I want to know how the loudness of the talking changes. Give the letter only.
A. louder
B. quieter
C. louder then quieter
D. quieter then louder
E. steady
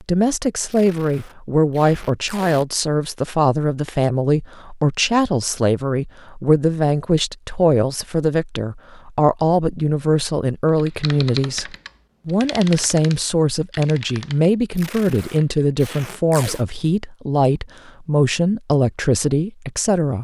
E.